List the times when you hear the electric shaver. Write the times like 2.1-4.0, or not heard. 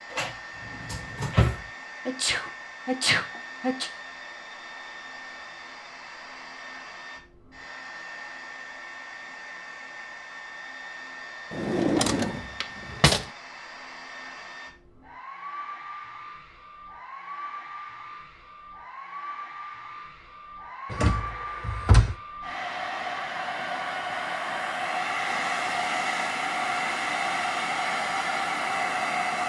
not heard.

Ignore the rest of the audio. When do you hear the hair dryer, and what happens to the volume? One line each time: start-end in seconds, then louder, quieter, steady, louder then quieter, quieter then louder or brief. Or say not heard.
0.0-29.4 louder.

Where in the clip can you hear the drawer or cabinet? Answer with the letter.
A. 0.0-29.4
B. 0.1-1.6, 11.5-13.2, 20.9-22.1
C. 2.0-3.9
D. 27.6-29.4
B.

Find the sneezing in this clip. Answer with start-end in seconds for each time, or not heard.
2.0-3.9.